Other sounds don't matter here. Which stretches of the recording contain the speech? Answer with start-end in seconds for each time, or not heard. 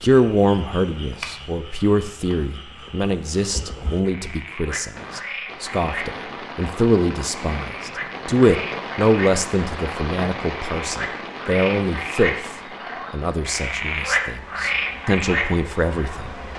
0.0-12.5, 13.1-16.4.